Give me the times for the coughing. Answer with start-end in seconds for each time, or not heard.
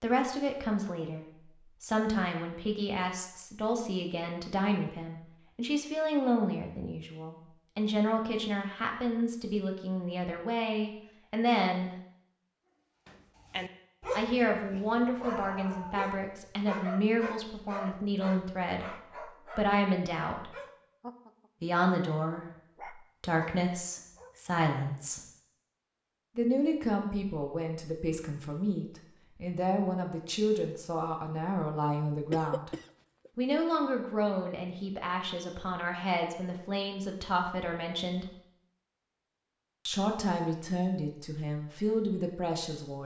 32.3-33.3.